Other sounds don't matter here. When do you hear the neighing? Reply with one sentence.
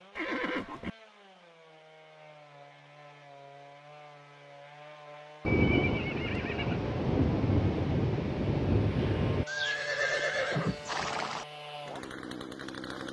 The neighing can be heard from 0.1 to 0.9 s, from 5.5 to 6.8 s and from 9.4 to 11.4 s.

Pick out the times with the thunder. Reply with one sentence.
You can hear the thunder from 5.5 to 9.4 s.